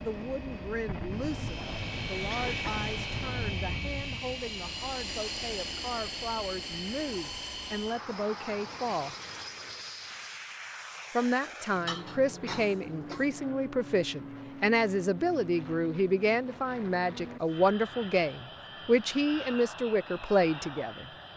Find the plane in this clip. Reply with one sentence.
The plane can be heard from 0.0 to 21.3 s.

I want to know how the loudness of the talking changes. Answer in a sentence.
The loudness of the talking goes up.